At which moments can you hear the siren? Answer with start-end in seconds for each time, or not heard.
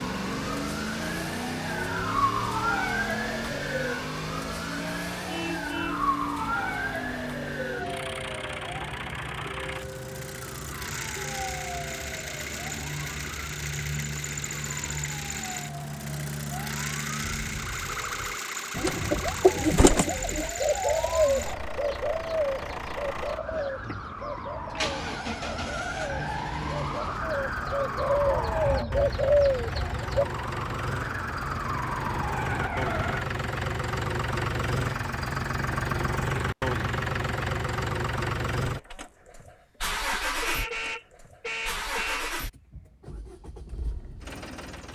0.0-33.2.